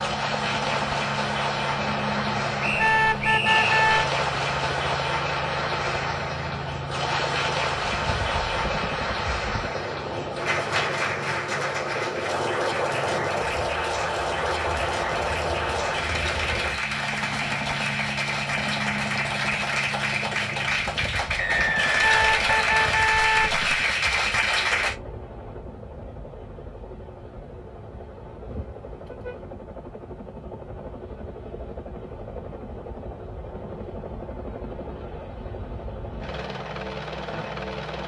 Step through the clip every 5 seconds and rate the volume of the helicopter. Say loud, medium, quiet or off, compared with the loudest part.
loud, loud, loud, loud, medium, medium, medium, loud.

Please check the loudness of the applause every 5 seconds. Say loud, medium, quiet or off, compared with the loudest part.
loud, loud, loud, loud, loud, off, off, off.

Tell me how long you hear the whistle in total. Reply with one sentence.
The whistle can be heard for 3 seconds in total.